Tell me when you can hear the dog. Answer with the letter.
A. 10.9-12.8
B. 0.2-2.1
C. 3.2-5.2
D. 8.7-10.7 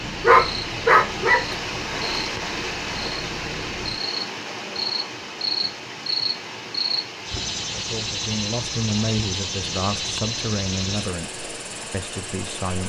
B.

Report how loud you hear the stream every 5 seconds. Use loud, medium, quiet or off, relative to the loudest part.
loud, medium, medium.